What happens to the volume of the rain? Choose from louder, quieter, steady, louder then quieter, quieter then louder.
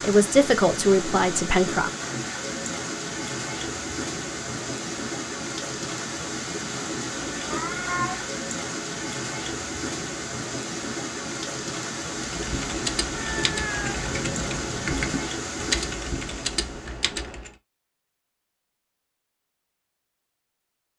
steady.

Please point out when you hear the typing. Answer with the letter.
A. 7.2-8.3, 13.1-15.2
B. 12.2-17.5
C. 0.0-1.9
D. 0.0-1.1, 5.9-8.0
B.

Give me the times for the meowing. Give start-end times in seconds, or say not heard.
7.2-8.3, 13.1-15.2.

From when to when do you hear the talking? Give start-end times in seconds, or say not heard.
0.0-1.9.